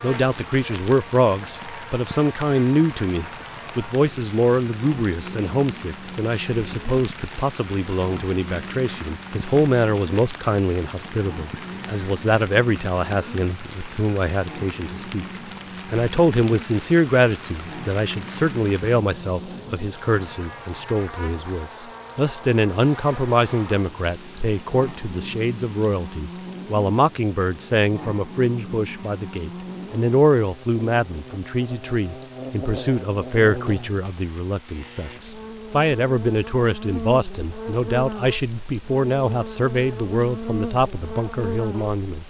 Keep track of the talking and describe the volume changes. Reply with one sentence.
The volume of the talking stays about the same.